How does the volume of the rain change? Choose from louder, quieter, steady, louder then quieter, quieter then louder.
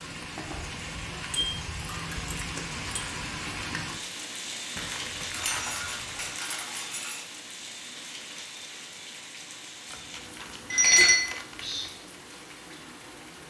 quieter.